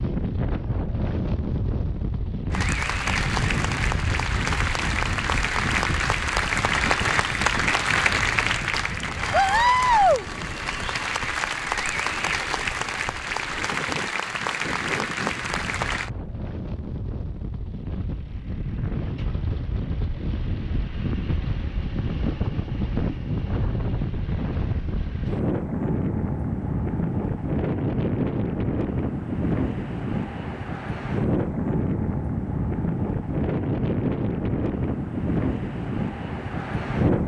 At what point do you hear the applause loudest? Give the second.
10 s.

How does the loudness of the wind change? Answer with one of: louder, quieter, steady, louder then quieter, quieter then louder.
quieter then louder.